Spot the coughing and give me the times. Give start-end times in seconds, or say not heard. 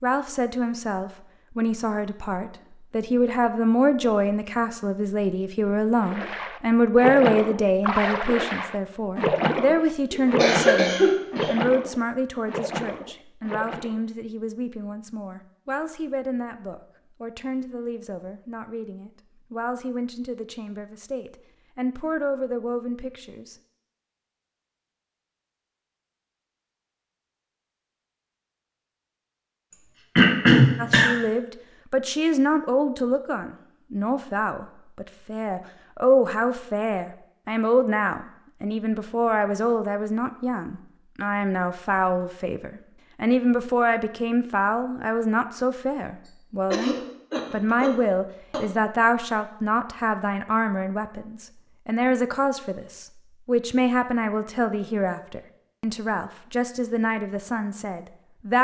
10.1-11.6, 29.7-31.1, 46.2-48.6.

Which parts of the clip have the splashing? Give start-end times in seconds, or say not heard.
6.0-14.0.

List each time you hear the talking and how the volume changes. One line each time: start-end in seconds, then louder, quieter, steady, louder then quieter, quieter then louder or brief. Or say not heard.
0.0-23.6 quieter
30.8-58.5 steady.